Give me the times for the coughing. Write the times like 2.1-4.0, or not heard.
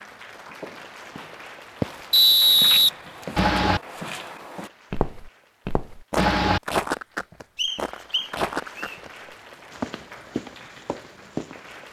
3.4-3.8, 6.2-6.6.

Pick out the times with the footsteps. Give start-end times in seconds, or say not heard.
0.6-9.1, 9.7-11.8.